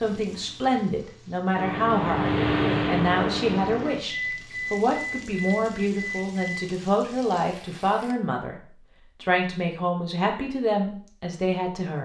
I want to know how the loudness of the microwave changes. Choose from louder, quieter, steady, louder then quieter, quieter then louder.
quieter.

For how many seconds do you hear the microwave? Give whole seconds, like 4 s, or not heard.
5 s.